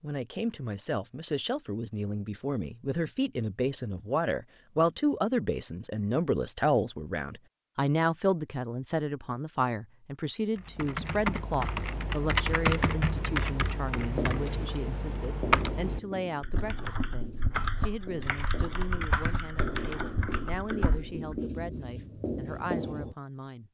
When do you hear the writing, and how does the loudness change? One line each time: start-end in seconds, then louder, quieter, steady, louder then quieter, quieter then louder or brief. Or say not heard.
13.9-23.1 quieter then louder.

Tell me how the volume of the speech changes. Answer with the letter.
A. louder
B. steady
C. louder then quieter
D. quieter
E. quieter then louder
D.